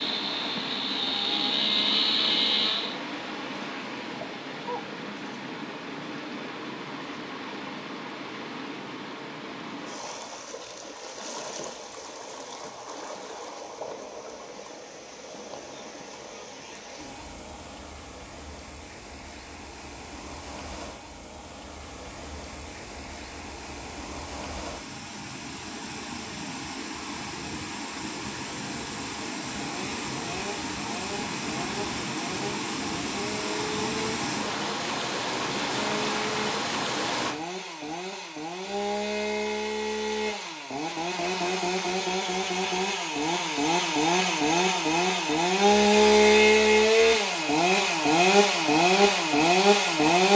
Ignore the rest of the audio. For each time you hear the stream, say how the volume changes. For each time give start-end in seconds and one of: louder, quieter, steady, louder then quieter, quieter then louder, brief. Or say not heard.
0.0-37.4 quieter then louder.